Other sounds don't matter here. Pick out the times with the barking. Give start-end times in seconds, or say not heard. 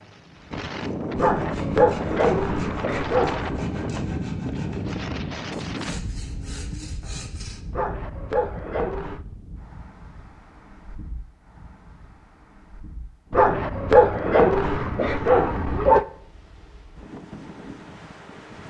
1.1-3.6, 7.7-9.2, 13.3-16.1.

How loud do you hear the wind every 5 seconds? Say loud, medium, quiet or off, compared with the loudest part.
loud, medium, quiet, quiet.